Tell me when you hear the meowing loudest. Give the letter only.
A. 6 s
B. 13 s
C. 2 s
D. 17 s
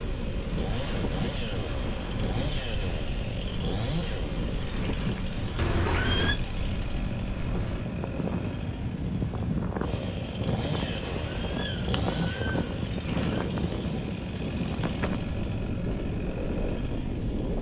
A.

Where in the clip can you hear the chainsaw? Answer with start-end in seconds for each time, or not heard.
0.0-17.5.